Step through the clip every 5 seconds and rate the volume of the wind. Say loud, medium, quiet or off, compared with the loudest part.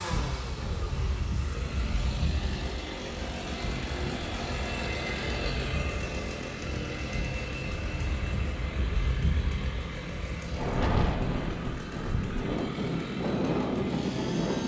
medium, medium, loud.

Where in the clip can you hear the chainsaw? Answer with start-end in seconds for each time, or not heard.
0.0-14.6.